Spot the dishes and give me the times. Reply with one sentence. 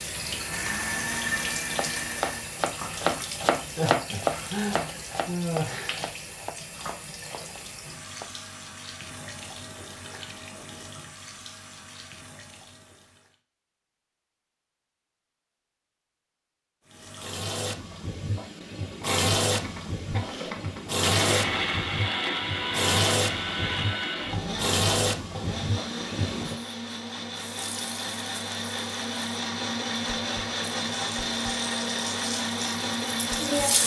The dishes can't be heard in this clip.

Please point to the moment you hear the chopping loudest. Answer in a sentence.
The loudest moment of the chopping is at 4 seconds.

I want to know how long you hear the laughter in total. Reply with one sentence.
You can hear the laughter for 4 seconds altogether.